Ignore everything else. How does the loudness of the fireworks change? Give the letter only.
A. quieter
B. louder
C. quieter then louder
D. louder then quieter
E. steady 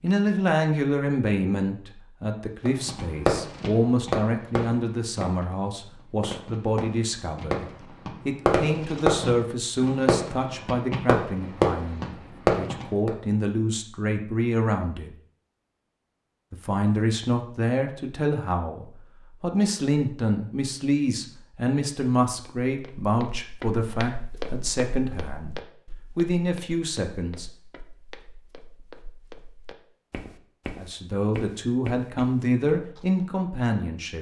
C.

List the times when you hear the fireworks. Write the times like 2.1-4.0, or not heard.
2.6-13.1.